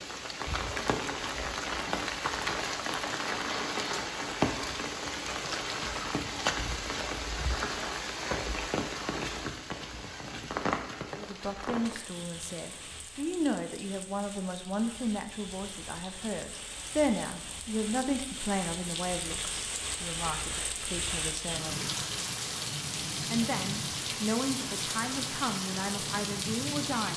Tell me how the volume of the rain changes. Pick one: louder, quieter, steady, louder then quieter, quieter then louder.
quieter then louder.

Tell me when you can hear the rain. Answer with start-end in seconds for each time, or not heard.
0.0-27.1.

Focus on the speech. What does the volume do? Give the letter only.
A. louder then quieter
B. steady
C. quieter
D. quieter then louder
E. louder
B.